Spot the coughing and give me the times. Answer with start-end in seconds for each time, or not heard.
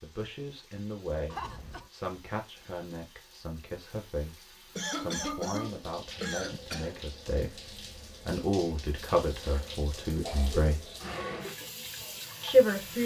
1.3-1.9, 4.8-7.0, 10.2-11.1.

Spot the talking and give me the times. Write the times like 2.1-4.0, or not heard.
0.0-11.0, 12.4-13.0.